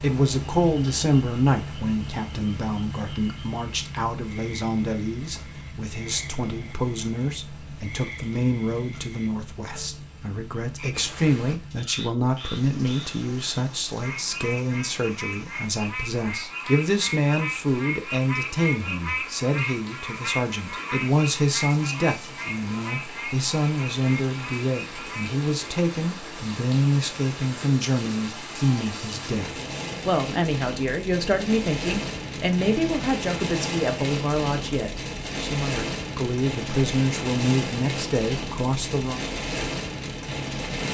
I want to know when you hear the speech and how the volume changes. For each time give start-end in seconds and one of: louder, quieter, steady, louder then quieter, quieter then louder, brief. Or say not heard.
0.0-39.2 steady.